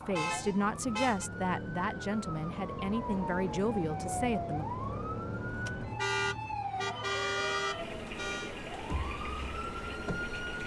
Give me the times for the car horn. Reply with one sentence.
The car horn can be heard from 0.1 to 1.3 s and from 6.0 to 8.5 s.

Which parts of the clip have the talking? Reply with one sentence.
The talking can be heard from 0.1 to 4.7 s.